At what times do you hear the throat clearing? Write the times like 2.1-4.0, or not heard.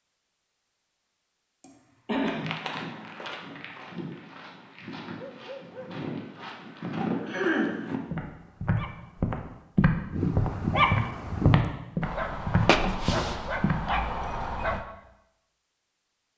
1.6-2.5, 7.2-7.8, 12.7-13.2.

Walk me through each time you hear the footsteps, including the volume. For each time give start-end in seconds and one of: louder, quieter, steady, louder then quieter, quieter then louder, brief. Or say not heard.
2.2-13.8 louder.